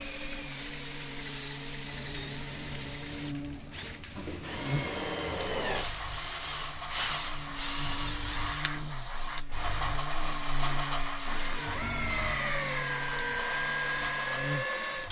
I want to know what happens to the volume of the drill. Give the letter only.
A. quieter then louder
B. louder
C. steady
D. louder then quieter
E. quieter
A.